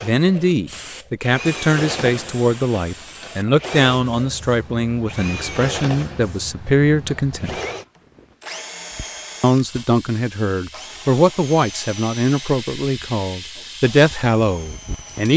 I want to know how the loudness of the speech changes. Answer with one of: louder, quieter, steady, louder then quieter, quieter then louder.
steady.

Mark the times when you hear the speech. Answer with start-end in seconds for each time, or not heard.
0.0-7.5, 9.4-15.3.